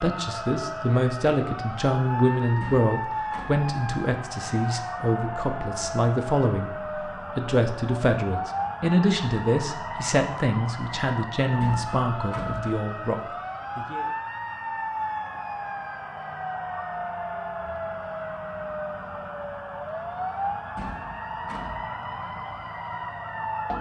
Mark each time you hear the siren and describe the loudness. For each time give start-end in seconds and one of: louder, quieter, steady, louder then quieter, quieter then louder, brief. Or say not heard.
0.0-23.7 steady.